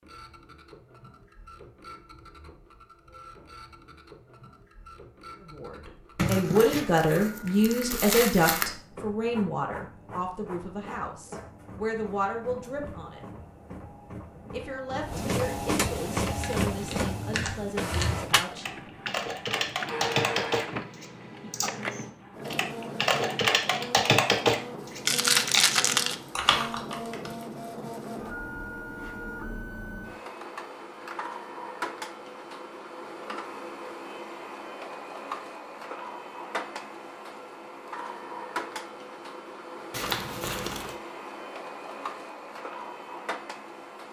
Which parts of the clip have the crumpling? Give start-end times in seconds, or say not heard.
6.2-8.7, 25.1-26.1, 39.9-41.0.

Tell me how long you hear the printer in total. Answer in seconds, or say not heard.
44 s.